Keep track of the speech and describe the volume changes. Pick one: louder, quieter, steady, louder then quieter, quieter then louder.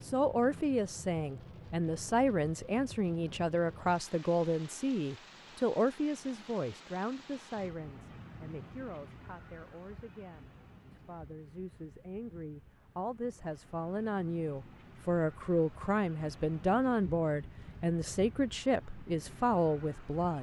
quieter then louder.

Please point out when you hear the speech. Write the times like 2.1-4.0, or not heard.
0.0-20.3.